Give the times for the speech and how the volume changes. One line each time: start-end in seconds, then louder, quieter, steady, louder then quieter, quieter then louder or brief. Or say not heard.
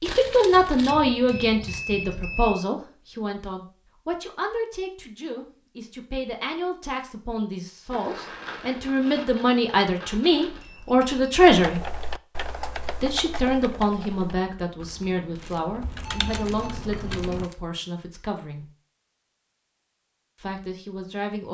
0.0-11.8 quieter then louder
13.0-18.7 quieter
20.4-21.4 brief.